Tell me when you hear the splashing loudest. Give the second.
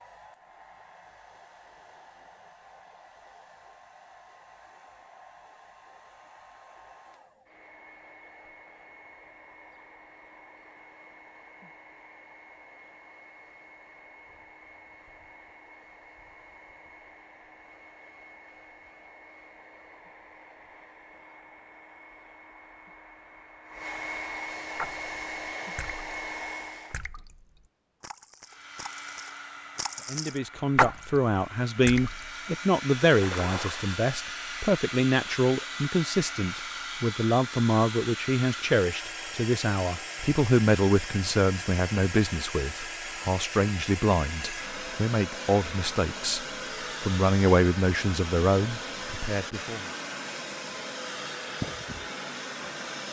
31 s.